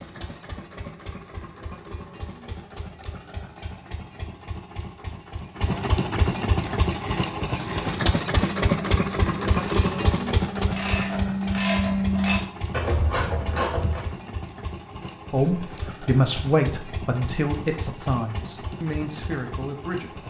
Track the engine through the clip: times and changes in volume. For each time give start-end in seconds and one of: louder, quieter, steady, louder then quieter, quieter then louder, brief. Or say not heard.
0.0-20.2 louder then quieter.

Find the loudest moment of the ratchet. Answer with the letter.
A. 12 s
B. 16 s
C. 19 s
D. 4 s
A.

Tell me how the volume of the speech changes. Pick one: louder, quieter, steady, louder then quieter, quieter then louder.
quieter.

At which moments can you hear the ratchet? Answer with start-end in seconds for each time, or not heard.
6.7-14.0.